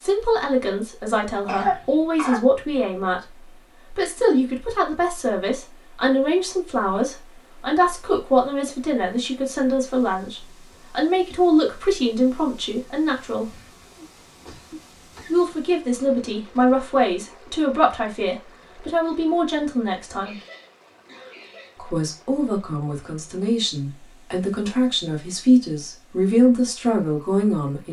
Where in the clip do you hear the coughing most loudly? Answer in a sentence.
The volume of the coughing peaks at 2 seconds.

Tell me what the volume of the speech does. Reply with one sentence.
The loudness of the speech stays about the same.